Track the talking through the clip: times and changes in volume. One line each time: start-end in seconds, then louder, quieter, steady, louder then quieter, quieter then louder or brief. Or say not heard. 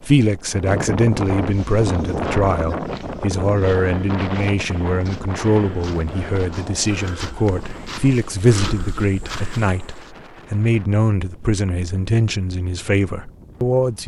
0.0-14.0 steady.